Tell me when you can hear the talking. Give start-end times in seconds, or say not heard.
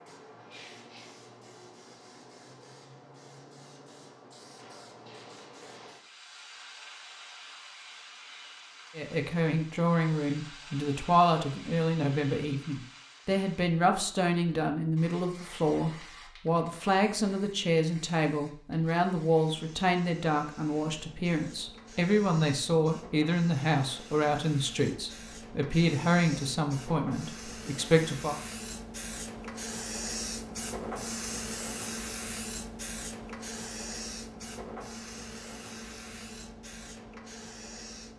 8.9-28.4.